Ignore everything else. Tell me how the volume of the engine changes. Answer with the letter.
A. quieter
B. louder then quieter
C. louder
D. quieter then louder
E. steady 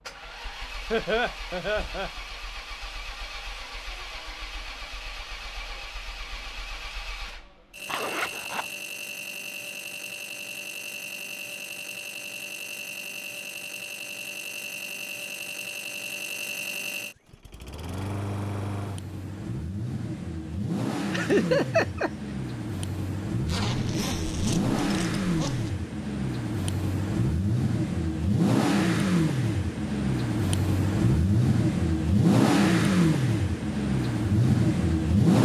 C.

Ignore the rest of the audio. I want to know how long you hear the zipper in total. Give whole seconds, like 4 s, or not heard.
3 s.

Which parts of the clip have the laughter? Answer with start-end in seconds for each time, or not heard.
0.9-2.1, 21.1-22.1.